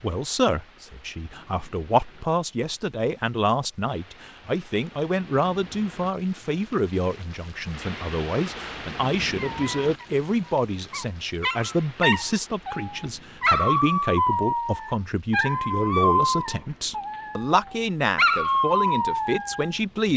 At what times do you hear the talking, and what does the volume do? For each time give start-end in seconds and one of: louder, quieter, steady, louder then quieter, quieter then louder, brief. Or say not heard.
0.0-20.1 steady.